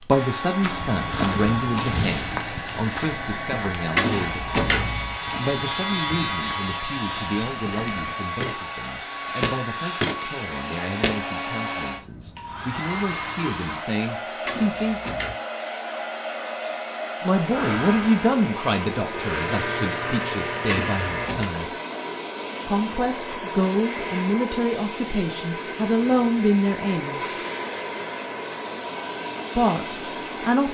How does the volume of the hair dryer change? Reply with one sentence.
The volume of the hair dryer stays about the same.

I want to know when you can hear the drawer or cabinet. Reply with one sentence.
The drawer or cabinet can be heard from 4.0 to 5.2 s, from 14.4 to 15.3 s and from 20.6 to 21.5 s.